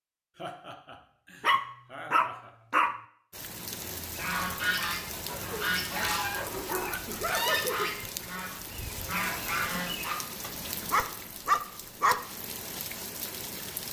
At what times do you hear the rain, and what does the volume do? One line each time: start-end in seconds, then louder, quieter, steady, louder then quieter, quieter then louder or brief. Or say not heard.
3.3-13.8 steady.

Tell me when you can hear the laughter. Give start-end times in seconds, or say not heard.
0.3-2.5, 7.0-7.9.